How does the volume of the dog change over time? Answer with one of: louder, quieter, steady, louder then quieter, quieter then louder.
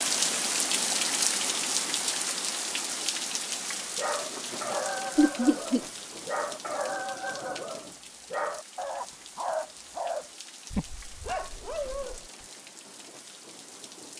steady.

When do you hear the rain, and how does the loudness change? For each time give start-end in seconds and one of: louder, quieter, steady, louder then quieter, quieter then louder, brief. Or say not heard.
0.0-14.1 quieter.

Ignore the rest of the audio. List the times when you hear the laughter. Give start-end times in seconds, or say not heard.
5.2-5.8.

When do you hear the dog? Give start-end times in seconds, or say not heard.
4.0-12.4.